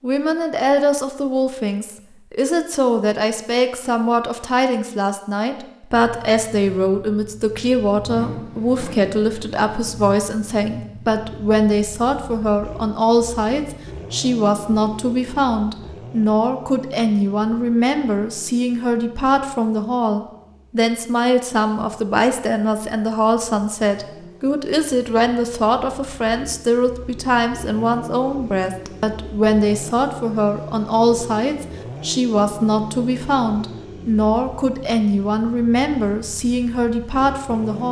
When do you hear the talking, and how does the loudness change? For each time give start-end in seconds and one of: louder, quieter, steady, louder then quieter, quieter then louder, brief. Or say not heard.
0.0-37.8 steady.